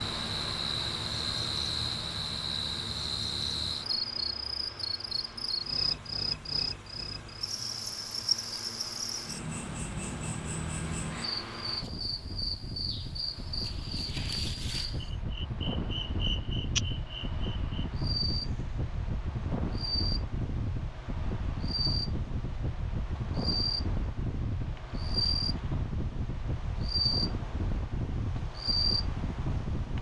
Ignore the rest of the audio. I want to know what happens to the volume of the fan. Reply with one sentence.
The loudness of the fan goes up.